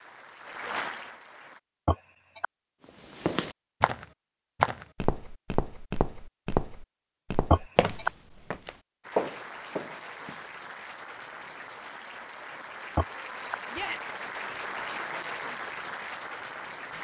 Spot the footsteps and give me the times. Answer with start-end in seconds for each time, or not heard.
3.0-10.4.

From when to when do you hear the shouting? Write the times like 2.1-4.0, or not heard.
13.7-14.2.